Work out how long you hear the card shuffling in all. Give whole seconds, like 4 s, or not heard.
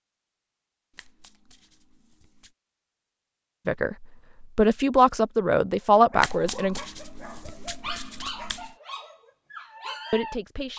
4 s.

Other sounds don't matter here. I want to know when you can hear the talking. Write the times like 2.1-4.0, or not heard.
3.6-6.8, 10.1-10.7.